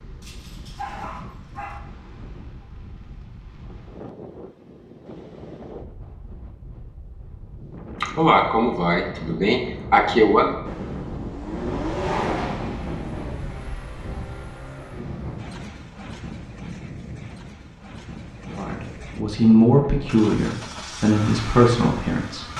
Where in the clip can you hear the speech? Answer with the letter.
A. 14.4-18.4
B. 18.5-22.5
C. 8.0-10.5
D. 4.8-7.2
B.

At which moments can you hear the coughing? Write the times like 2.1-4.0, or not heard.
8.0-10.5.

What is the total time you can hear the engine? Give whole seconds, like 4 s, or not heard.
12 s.